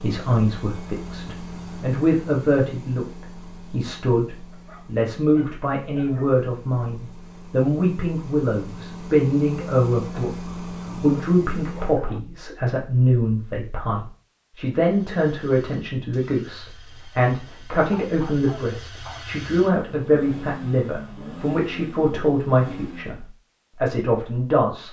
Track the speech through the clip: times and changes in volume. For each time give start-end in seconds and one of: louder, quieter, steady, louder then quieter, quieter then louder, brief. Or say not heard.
0.0-24.8 steady.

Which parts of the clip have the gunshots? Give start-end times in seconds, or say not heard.
not heard.